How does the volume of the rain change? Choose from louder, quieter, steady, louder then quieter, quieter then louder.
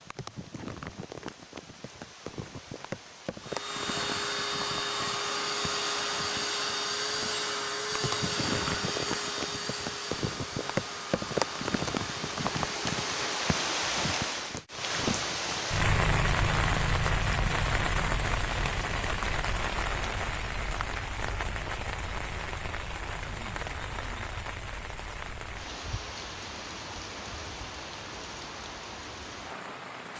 louder then quieter.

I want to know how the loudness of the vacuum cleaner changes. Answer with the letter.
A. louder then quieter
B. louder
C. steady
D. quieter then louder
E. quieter
E.